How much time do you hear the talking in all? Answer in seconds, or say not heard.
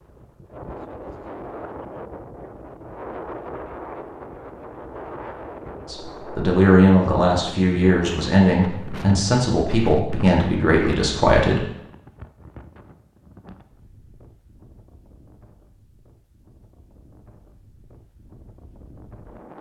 6 s.